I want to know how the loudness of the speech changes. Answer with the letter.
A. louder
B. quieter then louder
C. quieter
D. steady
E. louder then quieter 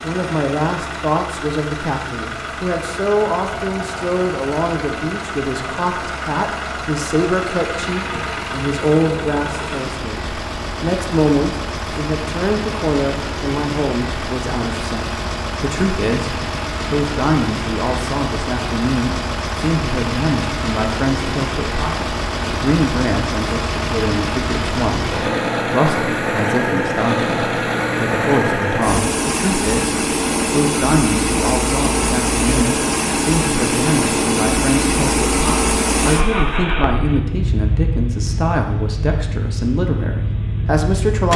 D.